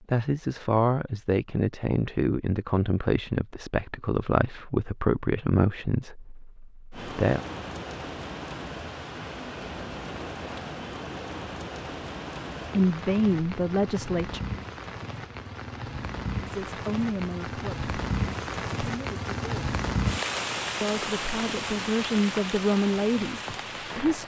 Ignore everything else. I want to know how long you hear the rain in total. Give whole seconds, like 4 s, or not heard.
17 s.